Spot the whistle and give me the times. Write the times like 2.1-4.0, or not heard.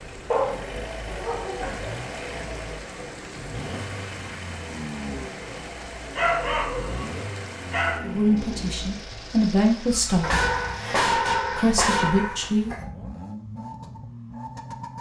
not heard.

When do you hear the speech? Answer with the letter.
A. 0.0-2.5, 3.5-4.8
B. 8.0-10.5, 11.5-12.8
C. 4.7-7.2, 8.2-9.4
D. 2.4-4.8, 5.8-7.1
B.